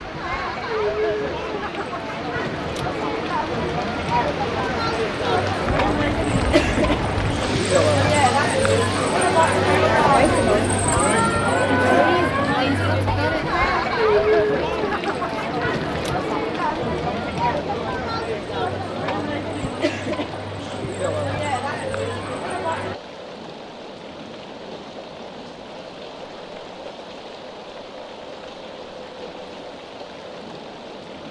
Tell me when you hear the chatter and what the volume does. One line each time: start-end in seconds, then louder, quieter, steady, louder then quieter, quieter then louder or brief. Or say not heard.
0.0-22.9 louder then quieter.